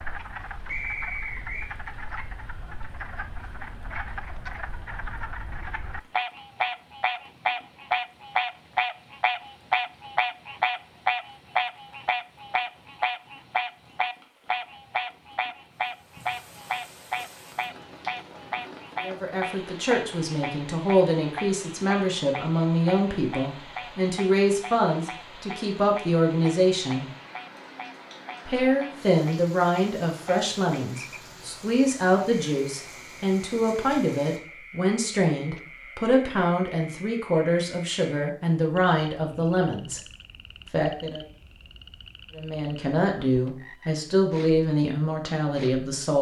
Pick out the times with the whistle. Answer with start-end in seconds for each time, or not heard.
0.7-1.7.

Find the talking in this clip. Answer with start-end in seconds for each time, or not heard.
19.0-27.1, 28.4-40.0, 40.7-41.2, 42.4-46.1.